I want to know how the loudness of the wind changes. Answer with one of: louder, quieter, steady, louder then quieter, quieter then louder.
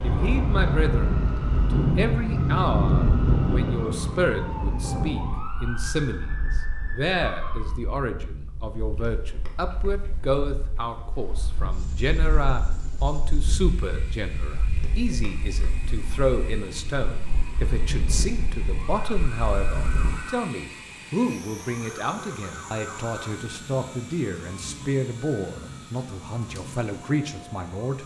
quieter then louder.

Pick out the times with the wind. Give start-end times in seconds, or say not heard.
0.0-20.1.